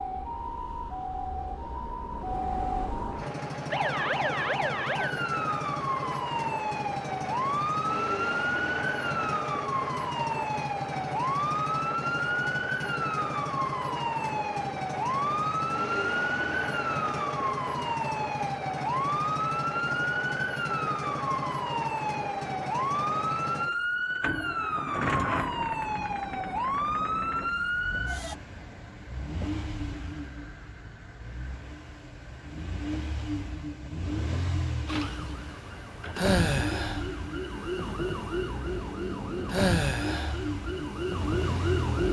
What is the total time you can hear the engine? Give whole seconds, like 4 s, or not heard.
39 s.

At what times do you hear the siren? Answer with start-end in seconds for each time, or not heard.
0.0-28.4, 34.9-42.0.